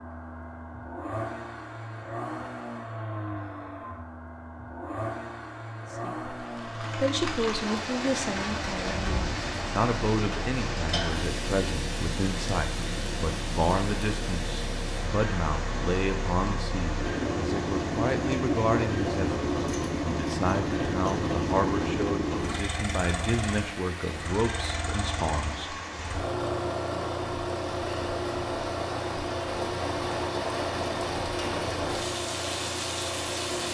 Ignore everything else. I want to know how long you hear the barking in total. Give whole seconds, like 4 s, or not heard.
not heard.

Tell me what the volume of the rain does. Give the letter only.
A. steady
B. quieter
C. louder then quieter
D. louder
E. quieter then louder
E.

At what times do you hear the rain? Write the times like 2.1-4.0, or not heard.
6.3-33.6.